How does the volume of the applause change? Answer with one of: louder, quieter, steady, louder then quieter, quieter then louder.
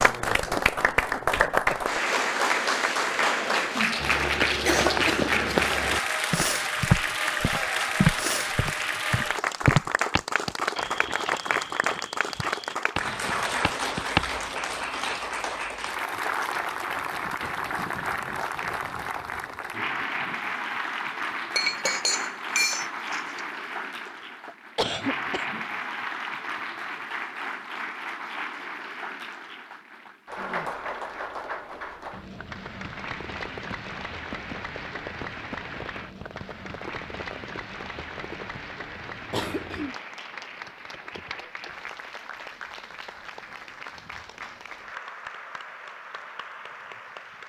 quieter.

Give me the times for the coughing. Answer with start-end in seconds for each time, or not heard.
3.8-5.7, 24.1-25.6, 39.3-40.0.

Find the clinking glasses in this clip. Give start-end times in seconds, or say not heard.
21.6-23.4.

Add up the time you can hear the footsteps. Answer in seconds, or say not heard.
10 s.